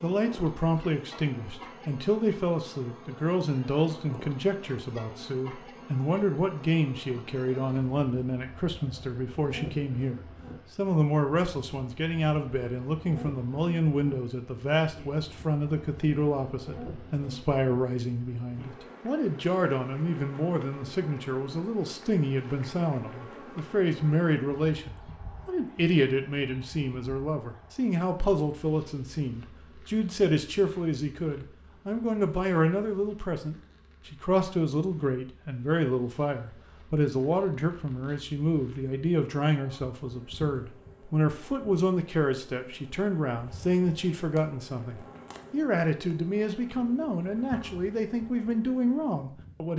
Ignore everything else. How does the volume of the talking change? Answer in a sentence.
The volume of the talking stays about the same.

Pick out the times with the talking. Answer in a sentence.
You can hear the talking from 0.0 to 49.7 s.